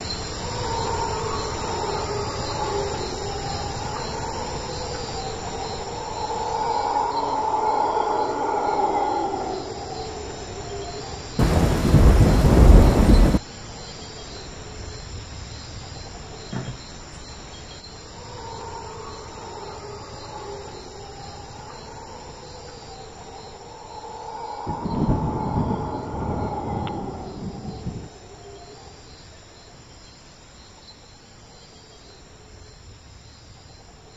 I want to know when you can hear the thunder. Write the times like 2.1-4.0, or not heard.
11.3-13.4, 24.6-28.1.